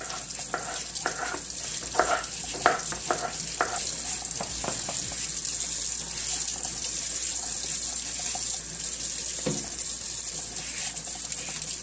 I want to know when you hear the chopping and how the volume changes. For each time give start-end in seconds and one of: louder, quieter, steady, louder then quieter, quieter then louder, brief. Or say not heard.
0.0-5.2 louder then quieter.